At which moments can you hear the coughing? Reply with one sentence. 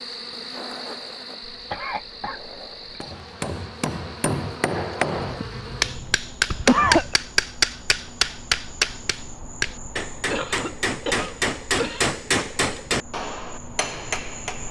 You can hear the coughing from 1.4 to 3.0 s, from 5.2 to 7.2 s and from 10.3 to 12.2 s.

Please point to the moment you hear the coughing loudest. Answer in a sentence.
The loudest moment of the coughing is at 7 seconds.